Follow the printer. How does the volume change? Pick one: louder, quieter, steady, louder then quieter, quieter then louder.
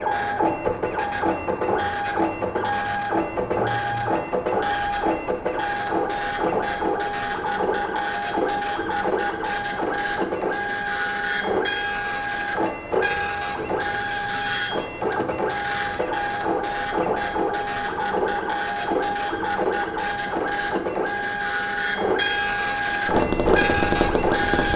steady.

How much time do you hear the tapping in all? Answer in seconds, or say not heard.
2 s.